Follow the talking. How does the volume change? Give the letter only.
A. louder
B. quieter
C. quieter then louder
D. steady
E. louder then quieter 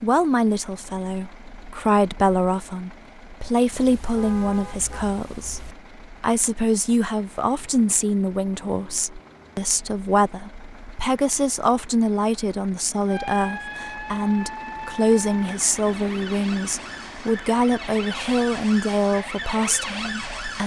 D.